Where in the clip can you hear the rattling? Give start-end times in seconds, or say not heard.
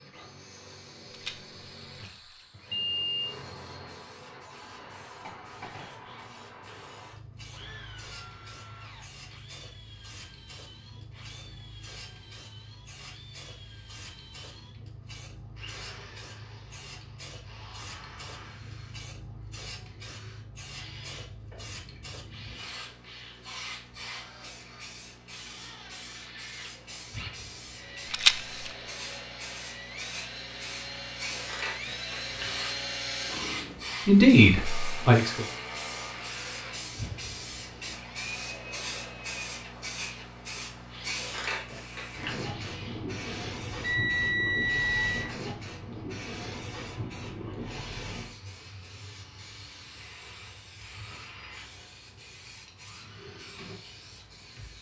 1.1-2.5, 28.1-28.7.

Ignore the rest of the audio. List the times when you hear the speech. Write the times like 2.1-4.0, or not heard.
34.0-35.5.